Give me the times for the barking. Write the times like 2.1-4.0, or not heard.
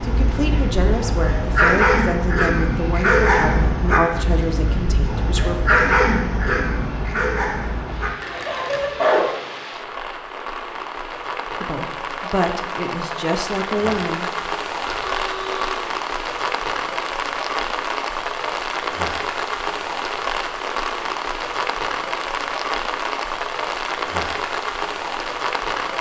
0.0-9.3.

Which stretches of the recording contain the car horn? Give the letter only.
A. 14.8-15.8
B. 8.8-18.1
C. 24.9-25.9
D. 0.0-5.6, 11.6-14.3
A.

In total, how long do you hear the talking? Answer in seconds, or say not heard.
8 s.